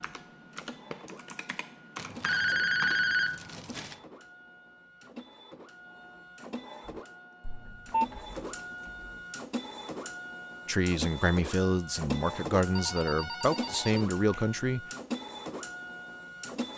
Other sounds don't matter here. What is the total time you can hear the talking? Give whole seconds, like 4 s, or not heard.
4 s.